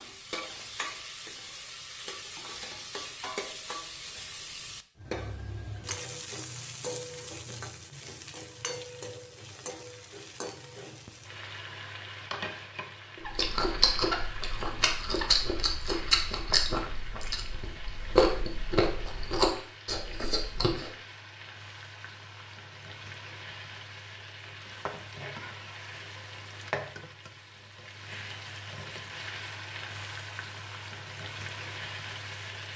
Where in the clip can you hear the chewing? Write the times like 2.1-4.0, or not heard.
13.2-20.9.